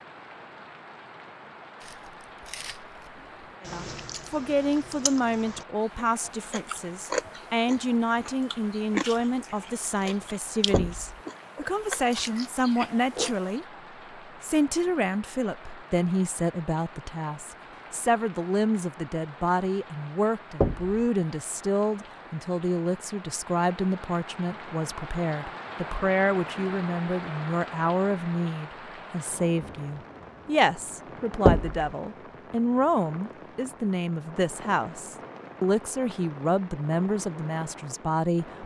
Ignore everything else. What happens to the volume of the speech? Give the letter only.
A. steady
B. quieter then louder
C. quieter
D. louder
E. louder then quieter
A.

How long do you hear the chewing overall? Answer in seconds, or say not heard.
12 s.